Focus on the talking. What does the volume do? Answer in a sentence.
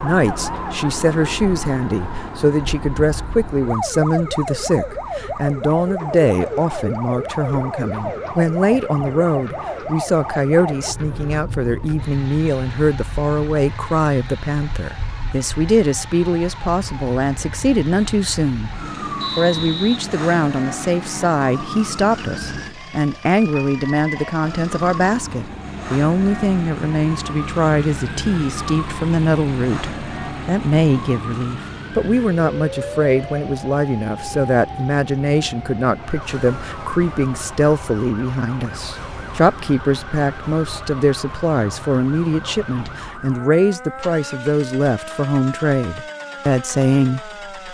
The volume of the talking stays about the same.